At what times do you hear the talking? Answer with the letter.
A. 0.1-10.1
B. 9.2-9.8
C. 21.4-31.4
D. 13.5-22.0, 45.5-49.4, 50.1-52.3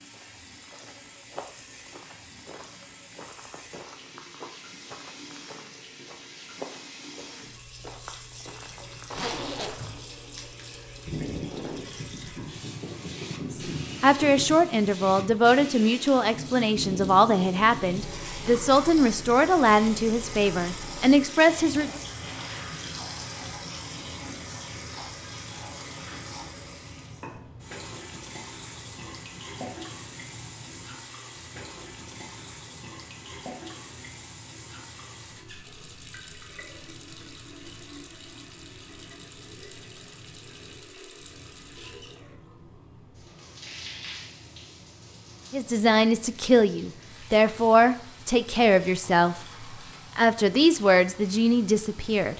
D.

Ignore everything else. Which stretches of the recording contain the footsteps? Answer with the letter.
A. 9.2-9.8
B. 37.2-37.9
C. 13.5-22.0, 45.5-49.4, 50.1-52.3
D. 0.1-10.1
D.